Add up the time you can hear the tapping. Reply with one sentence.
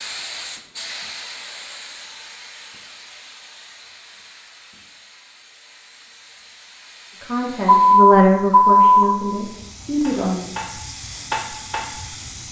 You can hear the tapping for 2 seconds altogether.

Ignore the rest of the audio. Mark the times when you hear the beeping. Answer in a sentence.
The beeping can be heard from 7.7 to 9.1 s.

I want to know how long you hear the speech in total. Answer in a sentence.
The speech can be heard for 3 seconds in total.